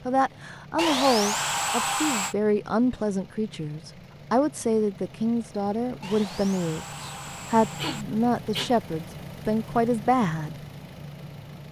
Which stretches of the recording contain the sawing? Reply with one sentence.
You can hear the sawing from 0.8 to 2.4 s and from 6.0 to 8.1 s.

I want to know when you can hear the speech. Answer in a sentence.
The speech can be heard from 0.1 to 10.6 s.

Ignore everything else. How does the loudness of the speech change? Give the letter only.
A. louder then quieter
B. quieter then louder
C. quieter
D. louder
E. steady
E.